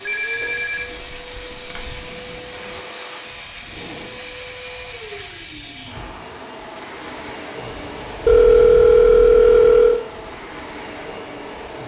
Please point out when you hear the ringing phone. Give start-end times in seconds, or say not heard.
0.1-2.0, 8.2-10.0.